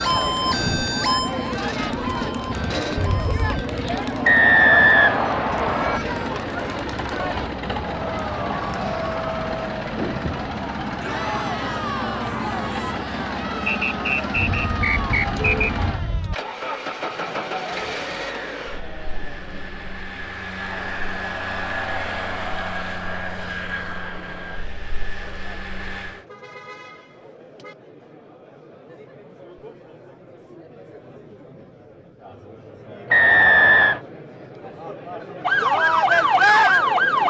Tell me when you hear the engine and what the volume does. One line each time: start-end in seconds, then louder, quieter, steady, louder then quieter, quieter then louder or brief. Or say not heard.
0.0-26.2 steady.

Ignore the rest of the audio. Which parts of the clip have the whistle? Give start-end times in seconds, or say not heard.
4.2-6.0, 13.7-15.7, 33.1-34.0.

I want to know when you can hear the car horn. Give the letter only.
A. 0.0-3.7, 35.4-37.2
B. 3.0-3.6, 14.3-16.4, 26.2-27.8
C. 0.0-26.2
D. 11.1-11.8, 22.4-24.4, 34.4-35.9
B.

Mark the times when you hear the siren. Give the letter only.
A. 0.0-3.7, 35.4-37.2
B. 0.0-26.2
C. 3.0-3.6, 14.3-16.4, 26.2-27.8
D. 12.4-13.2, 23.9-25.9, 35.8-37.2
A.